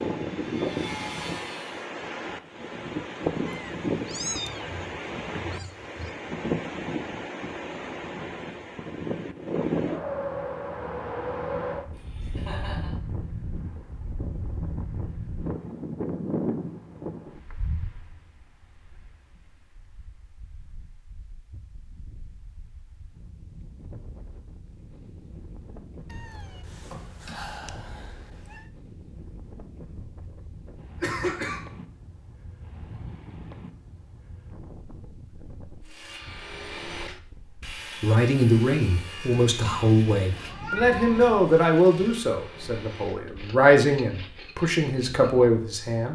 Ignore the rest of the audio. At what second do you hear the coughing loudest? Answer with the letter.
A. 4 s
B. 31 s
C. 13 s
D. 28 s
B.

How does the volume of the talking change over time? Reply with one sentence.
The volume of the talking stays about the same.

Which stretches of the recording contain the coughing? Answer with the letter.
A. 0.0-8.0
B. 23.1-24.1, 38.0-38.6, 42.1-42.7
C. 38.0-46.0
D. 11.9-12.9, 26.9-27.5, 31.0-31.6
D.